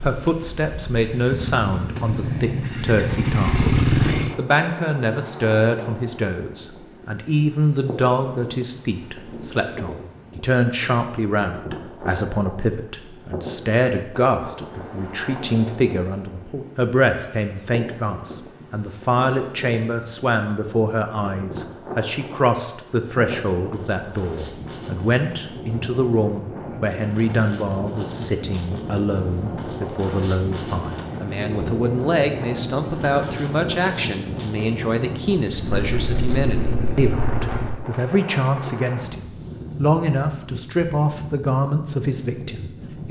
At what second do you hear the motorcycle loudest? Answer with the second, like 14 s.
4 s.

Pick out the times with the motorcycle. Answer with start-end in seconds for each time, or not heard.
0.0-4.3, 35.5-37.9.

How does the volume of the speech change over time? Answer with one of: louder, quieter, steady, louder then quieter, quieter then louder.
steady.